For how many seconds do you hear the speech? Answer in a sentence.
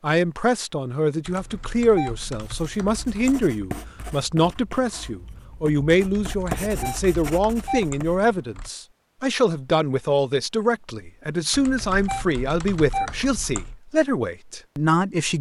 You can hear the speech for 15 seconds altogether.